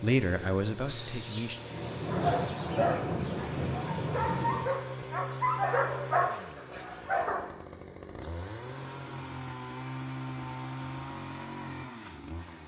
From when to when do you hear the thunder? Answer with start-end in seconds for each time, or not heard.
0.8-4.7.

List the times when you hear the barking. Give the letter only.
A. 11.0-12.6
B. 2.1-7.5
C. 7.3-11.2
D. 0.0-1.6
B.